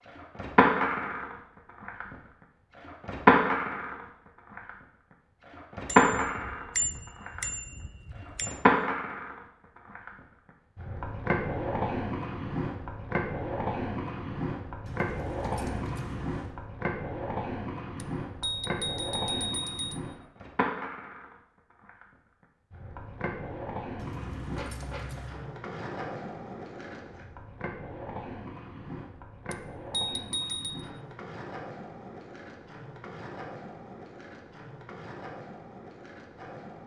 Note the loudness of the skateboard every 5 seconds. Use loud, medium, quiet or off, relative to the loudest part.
loud, loud, medium, medium, quiet, quiet, quiet, quiet.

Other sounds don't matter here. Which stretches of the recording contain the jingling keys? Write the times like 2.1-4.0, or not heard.
14.8-16.6, 23.9-25.4.